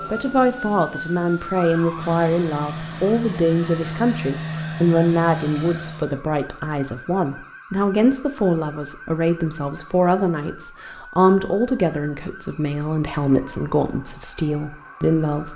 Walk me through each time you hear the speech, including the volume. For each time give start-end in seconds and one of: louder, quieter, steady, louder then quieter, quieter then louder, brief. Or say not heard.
0.1-15.5 steady.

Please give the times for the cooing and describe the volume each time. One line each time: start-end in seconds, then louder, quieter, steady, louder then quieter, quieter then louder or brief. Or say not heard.
not heard.